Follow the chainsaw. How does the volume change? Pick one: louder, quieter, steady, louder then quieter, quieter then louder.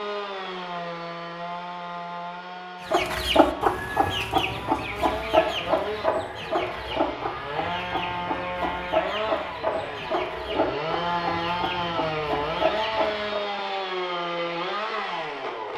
louder.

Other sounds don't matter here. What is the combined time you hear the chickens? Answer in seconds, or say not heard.
11 s.